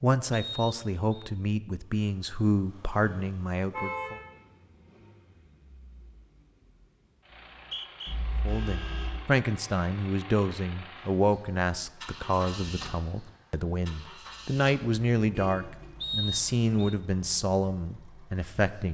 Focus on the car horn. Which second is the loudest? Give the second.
4 s.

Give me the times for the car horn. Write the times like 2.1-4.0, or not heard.
3.7-4.3, 8.1-9.3, 15.3-15.9.